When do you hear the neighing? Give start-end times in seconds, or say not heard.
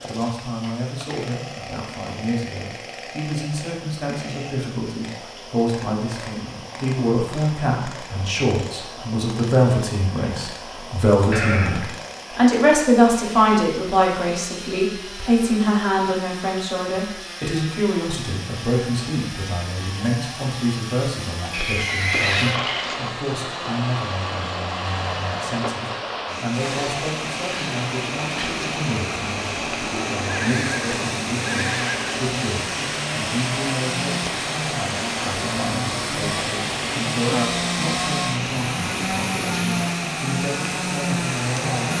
11.3-11.9, 21.5-23.1, 30.2-32.2.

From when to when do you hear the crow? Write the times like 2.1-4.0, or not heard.
not heard.